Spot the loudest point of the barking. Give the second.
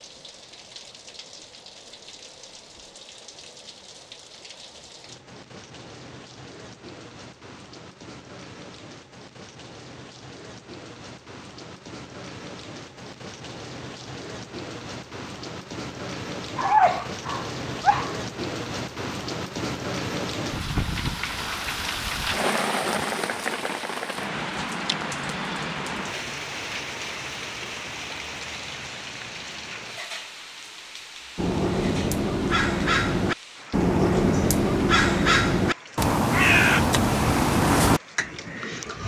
17 s.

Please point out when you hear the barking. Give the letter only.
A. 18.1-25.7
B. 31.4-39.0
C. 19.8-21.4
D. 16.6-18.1
D.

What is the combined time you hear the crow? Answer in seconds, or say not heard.
8 s.